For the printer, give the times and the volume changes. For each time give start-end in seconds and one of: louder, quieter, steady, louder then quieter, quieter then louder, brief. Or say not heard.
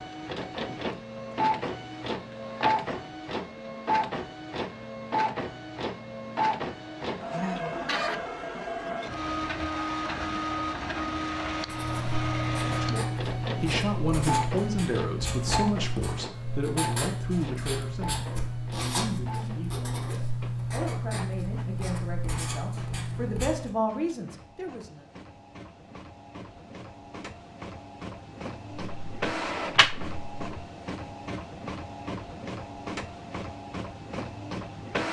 0.0-35.0 quieter then louder.